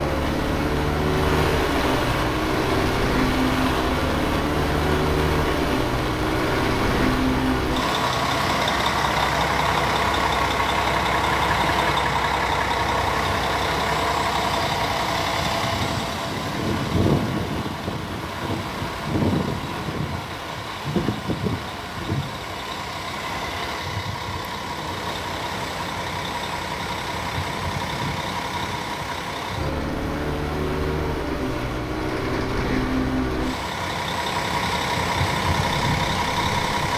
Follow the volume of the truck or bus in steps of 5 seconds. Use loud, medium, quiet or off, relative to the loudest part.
loud, loud, loud, loud, medium, medium, loud, loud.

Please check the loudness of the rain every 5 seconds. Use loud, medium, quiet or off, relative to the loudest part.
loud, loud, loud, medium, medium, medium, medium, off.